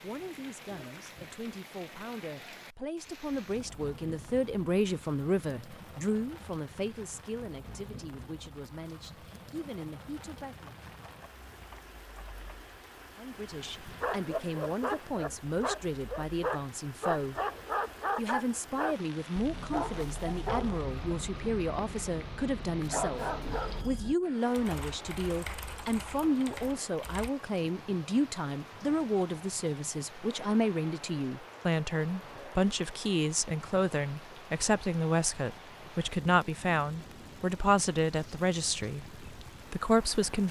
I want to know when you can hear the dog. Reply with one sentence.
The dog can be heard from 13.8 to 24.1 s.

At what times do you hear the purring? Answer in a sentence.
You can't hear the purring here.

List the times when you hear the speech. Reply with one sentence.
You can hear the speech from 0.0 to 10.8 s, from 13.2 to 17.4 s and from 18.1 to 40.4 s.